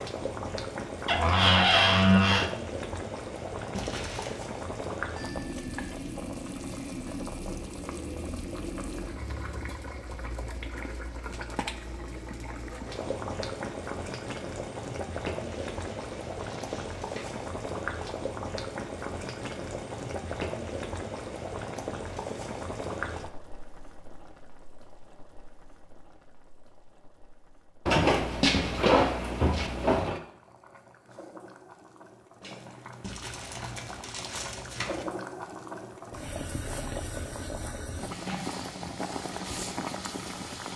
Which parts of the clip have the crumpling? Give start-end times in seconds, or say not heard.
3.7-4.4, 15.4-17.4, 33.0-35.0.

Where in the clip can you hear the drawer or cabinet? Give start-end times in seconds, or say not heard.
1.1-2.5, 27.9-30.2.